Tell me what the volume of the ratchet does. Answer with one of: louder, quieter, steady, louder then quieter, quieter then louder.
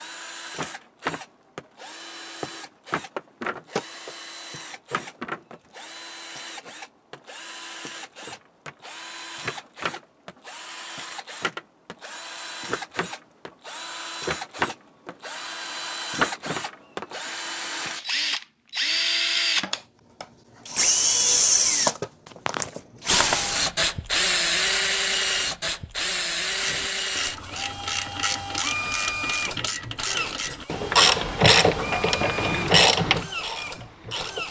louder.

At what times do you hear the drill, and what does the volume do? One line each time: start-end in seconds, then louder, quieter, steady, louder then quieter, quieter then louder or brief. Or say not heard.
0.0-34.4 louder then quieter.